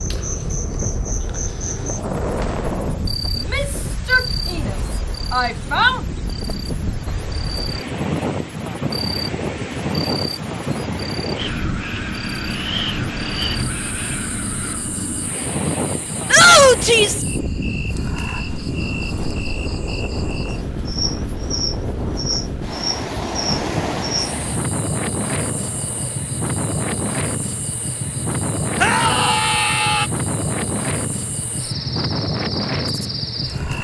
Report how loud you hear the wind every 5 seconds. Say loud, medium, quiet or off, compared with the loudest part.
medium, loud, loud, loud, loud, loud, loud.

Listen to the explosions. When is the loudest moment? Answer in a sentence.
The loudest moment of the explosions is at 2 seconds.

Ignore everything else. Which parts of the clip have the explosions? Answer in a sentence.
The explosions can be heard from 1.8 to 3.1 s and from 25.4 to 26.3 s.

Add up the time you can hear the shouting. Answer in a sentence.
The shouting can be heard for 5 seconds in total.